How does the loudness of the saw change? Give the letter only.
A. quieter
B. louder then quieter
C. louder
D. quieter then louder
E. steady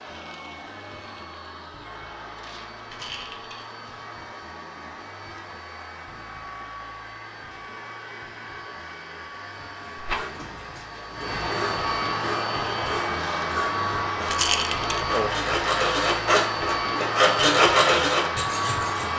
C.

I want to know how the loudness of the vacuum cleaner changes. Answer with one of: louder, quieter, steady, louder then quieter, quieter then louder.
louder.